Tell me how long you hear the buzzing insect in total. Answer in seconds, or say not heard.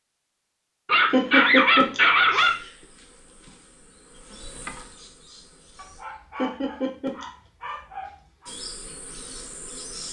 5 s.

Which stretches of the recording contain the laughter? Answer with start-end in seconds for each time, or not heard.
1.1-2.5, 6.3-7.2.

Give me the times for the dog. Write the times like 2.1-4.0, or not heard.
0.8-2.6, 5.8-8.5.